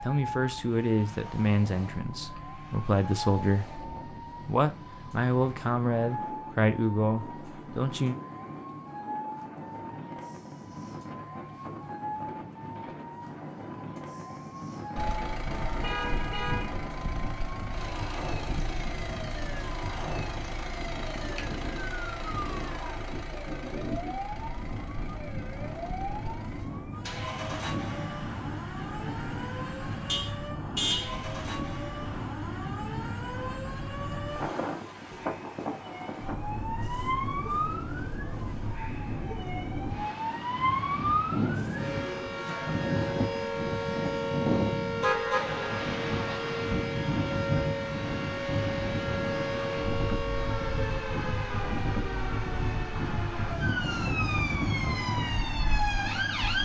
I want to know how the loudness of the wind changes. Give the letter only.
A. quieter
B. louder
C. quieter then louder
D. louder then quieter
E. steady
B.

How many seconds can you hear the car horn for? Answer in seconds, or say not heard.
3 s.